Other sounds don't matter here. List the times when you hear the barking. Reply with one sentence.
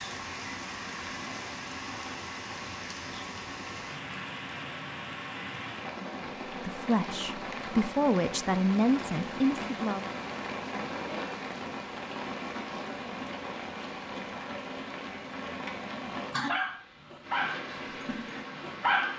The barking can be heard from 16.1 to 19.1 s.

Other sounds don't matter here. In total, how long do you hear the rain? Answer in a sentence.
You can hear the rain for 19 seconds altogether.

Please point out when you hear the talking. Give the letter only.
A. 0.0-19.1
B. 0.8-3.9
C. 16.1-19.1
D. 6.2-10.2
D.